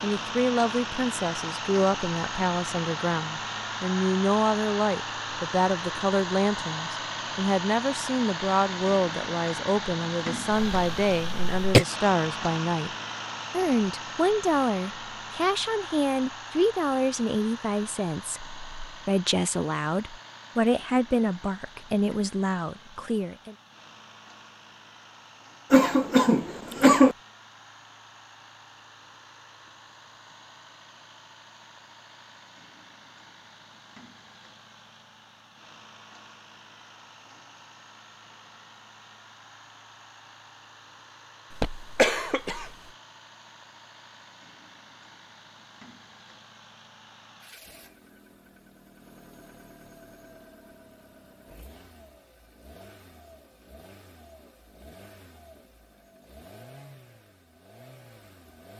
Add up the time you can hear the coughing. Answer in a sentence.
The coughing can be heard for 4 seconds in total.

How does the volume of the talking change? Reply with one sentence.
The volume of the talking stays about the same.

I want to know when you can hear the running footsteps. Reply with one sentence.
You can't hear the running footsteps here.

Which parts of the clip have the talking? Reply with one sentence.
The talking can be heard from 0.0 to 12.9 s and from 13.5 to 23.6 s.